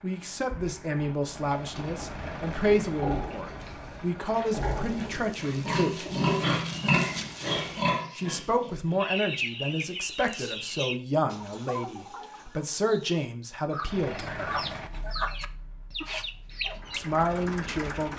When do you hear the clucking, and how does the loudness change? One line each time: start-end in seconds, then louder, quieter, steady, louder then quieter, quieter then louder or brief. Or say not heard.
9.0-17.0 quieter then louder.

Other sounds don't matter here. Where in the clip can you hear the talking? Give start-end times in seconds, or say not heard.
0.0-6.0, 8.2-14.6, 16.9-18.1.